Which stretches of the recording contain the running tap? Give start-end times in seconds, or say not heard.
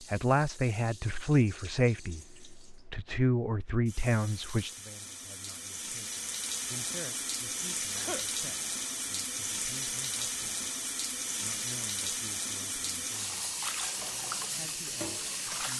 0.0-15.7.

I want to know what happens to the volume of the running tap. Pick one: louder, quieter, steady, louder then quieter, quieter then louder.
louder.